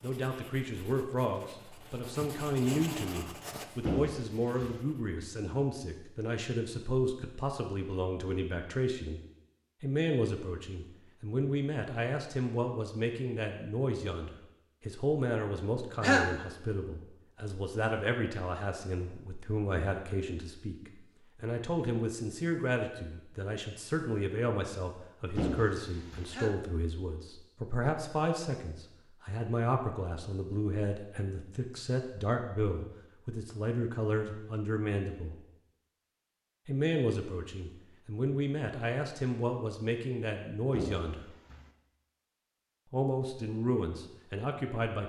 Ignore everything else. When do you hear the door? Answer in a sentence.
The door can be heard from 3.9 to 4.8 s, from 25.4 to 26.4 s and from 40.7 to 41.7 s.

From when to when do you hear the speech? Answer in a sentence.
The speech can be heard from 0.0 to 9.2 s, from 9.8 to 35.4 s, from 36.6 to 41.2 s and from 42.9 to 45.0 s.